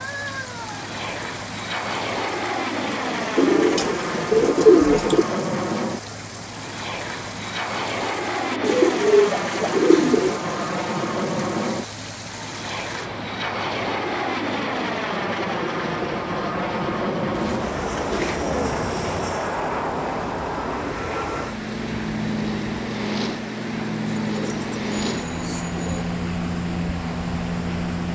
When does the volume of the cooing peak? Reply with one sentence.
The volume of the cooing peaks at 5 seconds.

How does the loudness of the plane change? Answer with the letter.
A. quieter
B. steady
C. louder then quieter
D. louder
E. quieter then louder
B.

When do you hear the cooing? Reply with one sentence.
You can hear the cooing from 3.4 to 5.2 s, from 8.5 to 10.4 s, from 17.3 to 19.1 s and from 24.2 to 26.1 s.